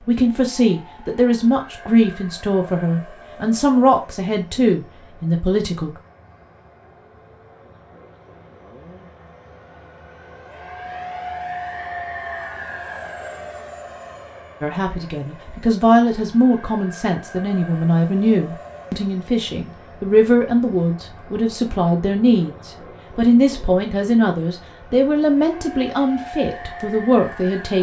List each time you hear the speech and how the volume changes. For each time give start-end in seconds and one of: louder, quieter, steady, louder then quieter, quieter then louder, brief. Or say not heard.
0.1-6.0 steady
14.6-27.7 steady.